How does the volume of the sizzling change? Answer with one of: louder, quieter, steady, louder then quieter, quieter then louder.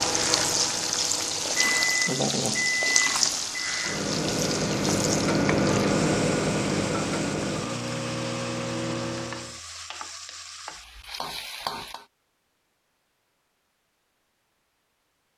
quieter.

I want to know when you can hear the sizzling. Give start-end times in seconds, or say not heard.
0.0-12.1.